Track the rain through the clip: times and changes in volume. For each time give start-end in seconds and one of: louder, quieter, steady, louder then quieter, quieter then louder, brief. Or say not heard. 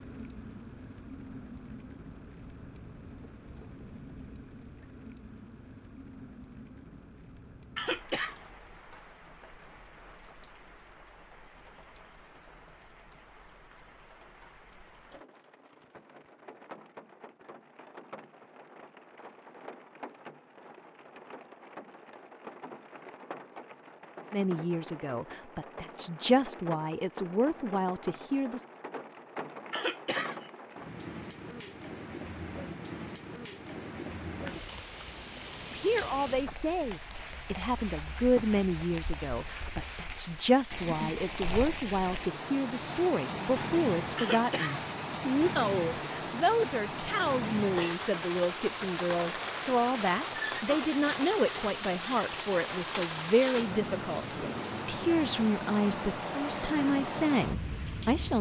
0.0-58.3 louder.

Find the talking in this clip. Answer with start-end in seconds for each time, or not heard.
24.3-28.6, 35.7-58.3.